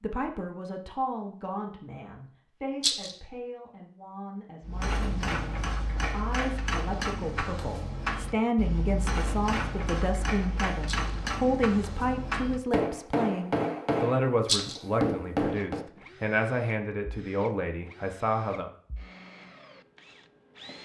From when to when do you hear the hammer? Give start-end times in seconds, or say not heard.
4.6-15.8.